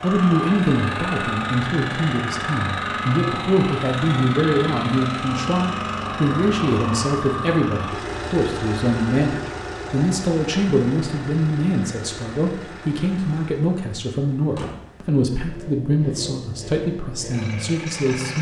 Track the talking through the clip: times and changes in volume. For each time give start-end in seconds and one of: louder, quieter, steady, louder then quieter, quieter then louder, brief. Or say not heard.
0.0-18.3 steady.